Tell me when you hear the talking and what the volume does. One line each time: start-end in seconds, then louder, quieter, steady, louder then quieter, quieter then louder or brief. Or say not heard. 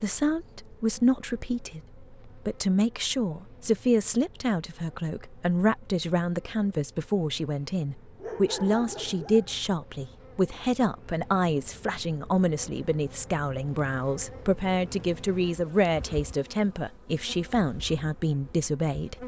0.0-19.2 steady.